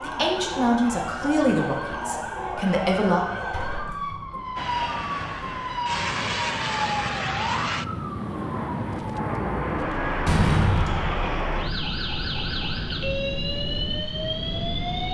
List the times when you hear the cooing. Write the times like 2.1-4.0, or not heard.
not heard.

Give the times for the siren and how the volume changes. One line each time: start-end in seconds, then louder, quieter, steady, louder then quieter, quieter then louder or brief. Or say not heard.
0.0-15.0 steady.